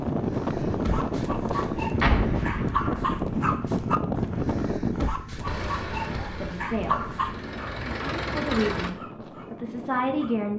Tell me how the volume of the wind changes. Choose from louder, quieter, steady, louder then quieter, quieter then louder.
quieter.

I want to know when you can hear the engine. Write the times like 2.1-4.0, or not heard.
5.5-8.9.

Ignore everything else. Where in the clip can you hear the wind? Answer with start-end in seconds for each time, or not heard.
0.0-10.5.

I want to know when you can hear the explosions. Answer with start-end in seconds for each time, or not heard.
2.0-3.2.